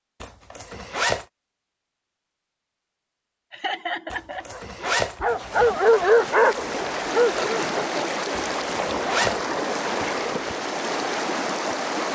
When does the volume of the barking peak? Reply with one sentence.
The loudest moment of the barking is at 6 seconds.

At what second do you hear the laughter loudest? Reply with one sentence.
The volume of the laughter peaks at 4 seconds.